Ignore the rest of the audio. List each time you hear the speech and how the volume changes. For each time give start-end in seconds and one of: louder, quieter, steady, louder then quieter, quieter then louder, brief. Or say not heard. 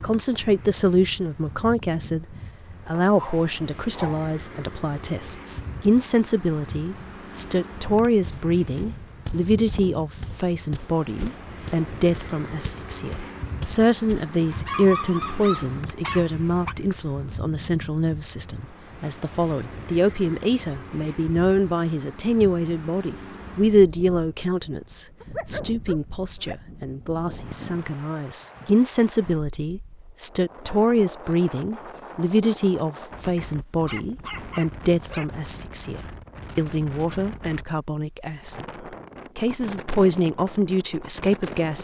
0.0-38.6 steady
39.4-41.8 brief.